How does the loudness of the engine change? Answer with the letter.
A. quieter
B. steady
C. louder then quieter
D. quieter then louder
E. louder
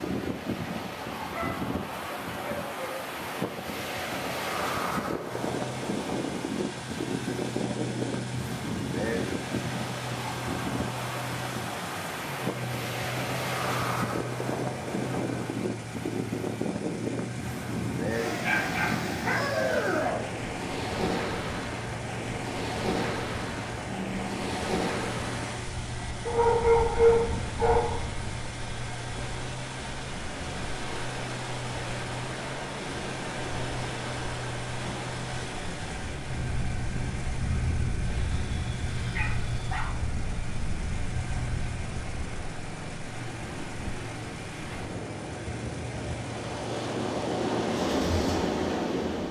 B.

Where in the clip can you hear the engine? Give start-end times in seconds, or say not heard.
5.2-49.2.